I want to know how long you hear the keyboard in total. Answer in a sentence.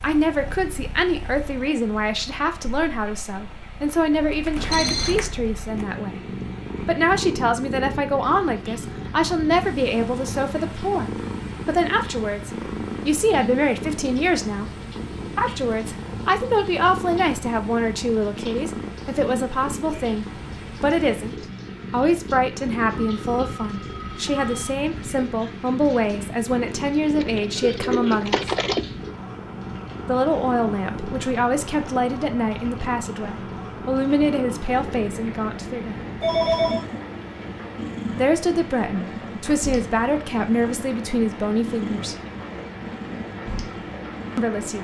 You can hear the keyboard for 3 seconds altogether.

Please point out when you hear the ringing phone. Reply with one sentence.
The ringing phone can be heard from 4.5 to 5.3 s, from 23.1 to 24.8 s and from 36.2 to 36.9 s.